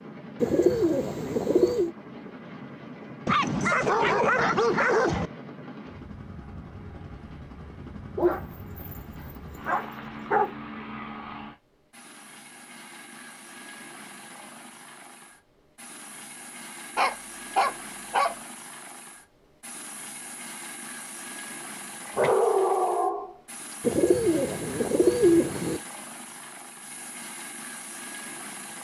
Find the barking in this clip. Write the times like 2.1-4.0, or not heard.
3.2-5.3, 8.2-9.0, 9.7-10.5, 16.9-18.4, 22.1-23.4.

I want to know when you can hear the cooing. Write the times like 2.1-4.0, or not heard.
0.4-1.9, 23.8-25.8.